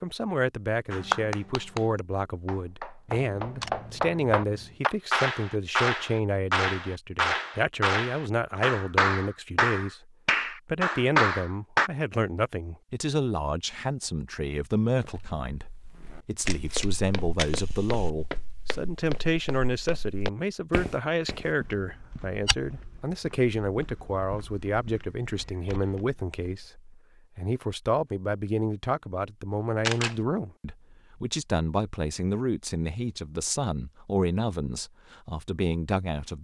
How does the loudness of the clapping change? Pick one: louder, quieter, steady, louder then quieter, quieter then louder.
louder.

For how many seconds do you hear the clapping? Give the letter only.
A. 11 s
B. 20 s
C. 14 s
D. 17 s
A.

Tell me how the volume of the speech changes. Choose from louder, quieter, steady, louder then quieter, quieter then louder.
steady.